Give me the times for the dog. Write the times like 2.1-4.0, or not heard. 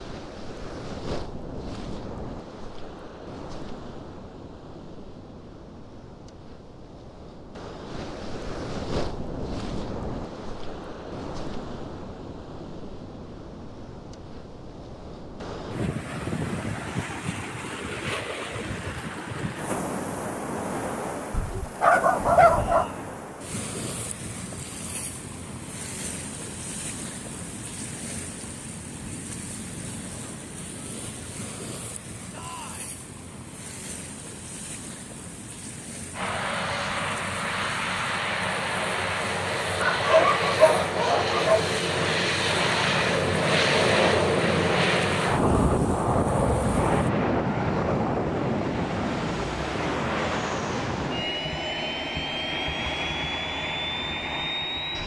21.3-22.9, 39.8-41.7.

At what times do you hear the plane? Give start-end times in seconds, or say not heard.
36.1-55.0.